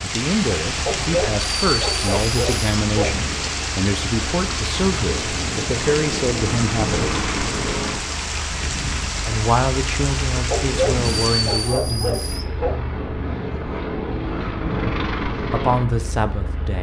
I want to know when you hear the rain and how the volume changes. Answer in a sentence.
The rain can be heard from 0.0 to 11.8 s, at a steady volume.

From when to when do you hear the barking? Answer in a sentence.
You can hear the barking from 0.8 to 3.2 s and from 10.5 to 12.8 s.